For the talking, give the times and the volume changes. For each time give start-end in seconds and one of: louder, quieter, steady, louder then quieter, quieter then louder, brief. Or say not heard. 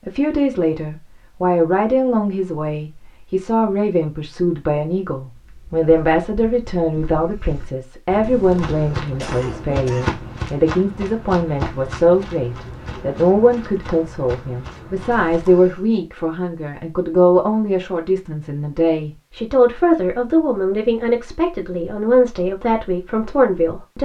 0.1-23.9 steady.